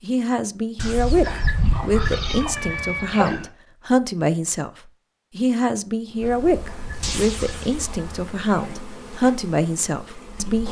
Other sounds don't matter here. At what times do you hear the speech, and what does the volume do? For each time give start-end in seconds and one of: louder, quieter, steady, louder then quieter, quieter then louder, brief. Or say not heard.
0.0-10.6 steady.